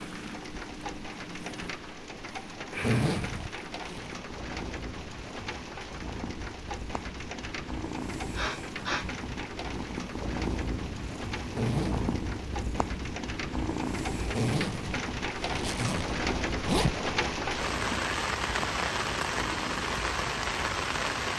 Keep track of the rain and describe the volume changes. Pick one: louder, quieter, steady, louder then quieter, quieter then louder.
louder.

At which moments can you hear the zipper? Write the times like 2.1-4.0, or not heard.
2.8-4.1, 11.5-12.1, 14.3-16.9.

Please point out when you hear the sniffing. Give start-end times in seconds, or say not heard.
8.3-9.2.